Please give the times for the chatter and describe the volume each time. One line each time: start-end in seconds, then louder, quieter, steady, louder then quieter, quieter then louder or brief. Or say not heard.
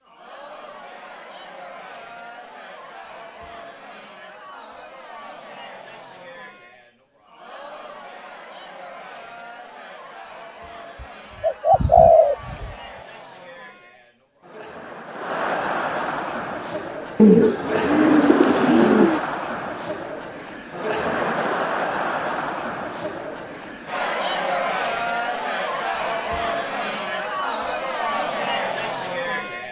0.0-29.6 louder.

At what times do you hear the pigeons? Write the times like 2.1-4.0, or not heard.
11.0-12.7, 17.1-19.2.